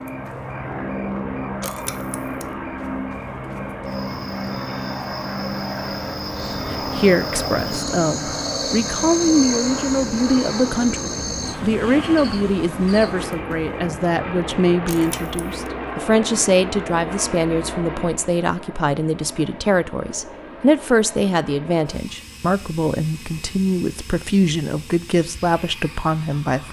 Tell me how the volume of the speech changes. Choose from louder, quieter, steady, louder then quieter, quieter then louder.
steady.